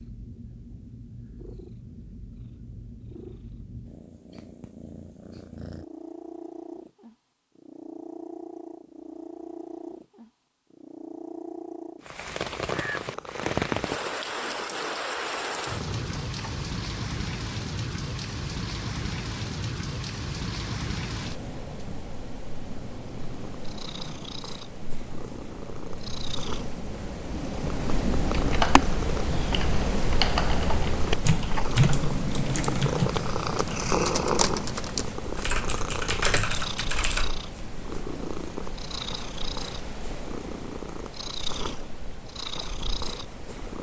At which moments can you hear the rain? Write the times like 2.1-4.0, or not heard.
12.0-43.7.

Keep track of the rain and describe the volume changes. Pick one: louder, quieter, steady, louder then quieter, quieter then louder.
quieter.